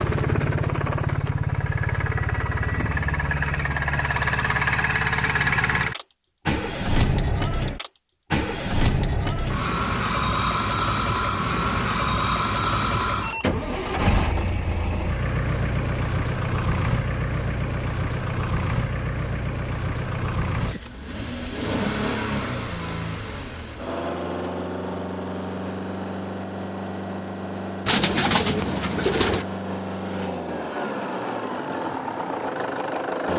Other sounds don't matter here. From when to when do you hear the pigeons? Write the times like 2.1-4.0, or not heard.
27.9-29.4.